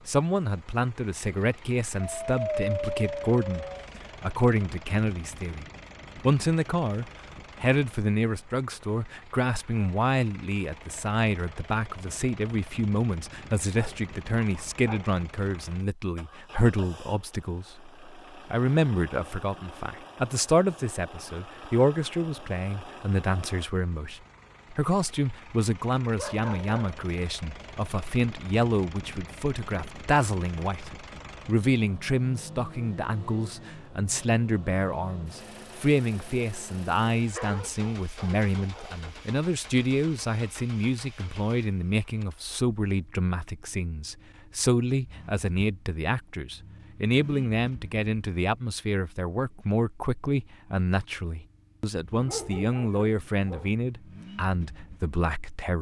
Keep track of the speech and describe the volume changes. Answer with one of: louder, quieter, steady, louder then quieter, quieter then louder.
steady.